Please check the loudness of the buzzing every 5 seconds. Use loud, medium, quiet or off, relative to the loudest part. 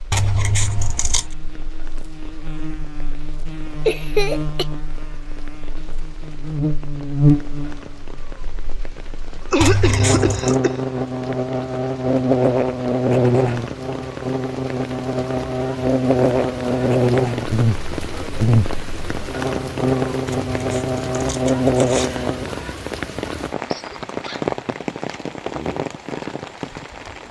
quiet, loud, loud, loud, loud, off.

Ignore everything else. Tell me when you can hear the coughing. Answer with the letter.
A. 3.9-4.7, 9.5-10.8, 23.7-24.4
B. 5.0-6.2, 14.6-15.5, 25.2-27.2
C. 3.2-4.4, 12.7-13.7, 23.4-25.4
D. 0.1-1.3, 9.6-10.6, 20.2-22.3
A.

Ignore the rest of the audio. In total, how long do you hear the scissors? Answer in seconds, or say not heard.
4 s.